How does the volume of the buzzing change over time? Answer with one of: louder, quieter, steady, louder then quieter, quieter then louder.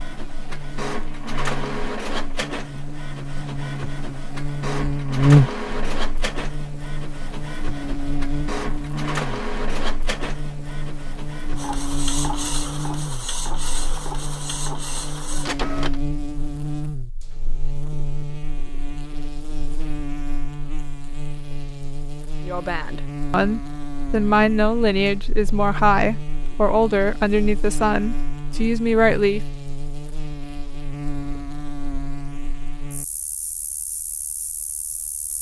quieter.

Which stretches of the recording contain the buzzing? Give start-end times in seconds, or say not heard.
0.0-35.3.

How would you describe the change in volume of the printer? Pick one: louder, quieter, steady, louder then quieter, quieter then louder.
steady.